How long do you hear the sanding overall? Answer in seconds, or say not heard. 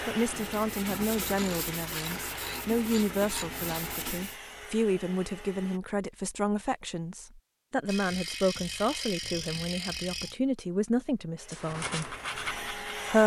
6 s.